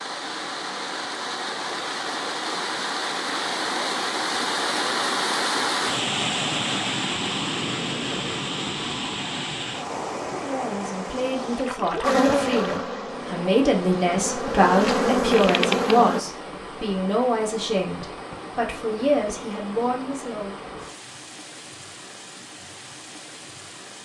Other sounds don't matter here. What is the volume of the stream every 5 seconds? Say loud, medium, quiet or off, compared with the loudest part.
loud, loud, medium, medium, quiet.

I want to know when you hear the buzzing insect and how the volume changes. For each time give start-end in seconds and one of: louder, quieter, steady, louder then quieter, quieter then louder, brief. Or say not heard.
12.0-16.2 quieter then louder.